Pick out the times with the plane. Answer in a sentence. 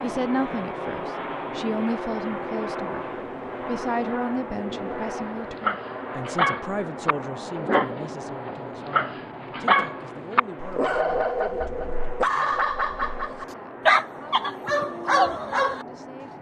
You can hear the plane from 0.0 to 16.3 s.